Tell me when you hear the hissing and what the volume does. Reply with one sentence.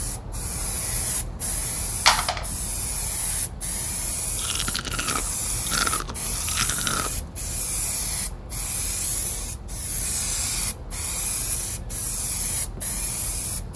The hissing can be heard from 0.0 to 13.7 s, at a steady volume.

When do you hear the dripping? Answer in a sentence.
You can't hear the dripping here.